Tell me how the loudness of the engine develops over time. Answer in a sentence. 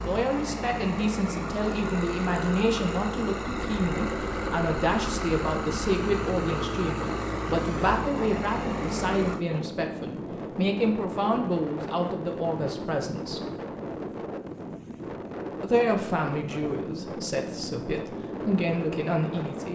The loudness of the engine stays about the same.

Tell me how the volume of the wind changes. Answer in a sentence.
The loudness of the wind stays about the same.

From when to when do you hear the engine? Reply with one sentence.
You can hear the engine from 0.0 to 9.4 s.